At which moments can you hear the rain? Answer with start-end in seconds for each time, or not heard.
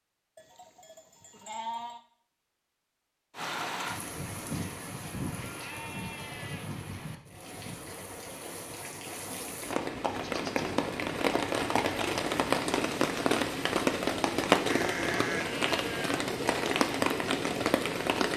3.4-18.3.